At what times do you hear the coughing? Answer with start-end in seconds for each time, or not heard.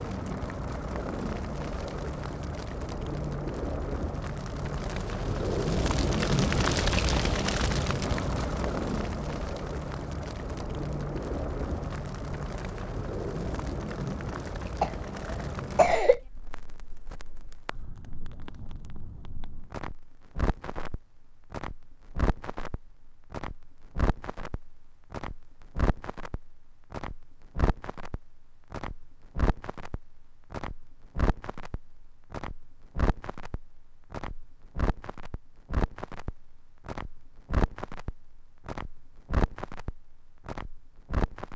14.8-16.2.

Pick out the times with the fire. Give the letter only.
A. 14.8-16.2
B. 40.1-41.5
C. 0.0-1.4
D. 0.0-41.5
D.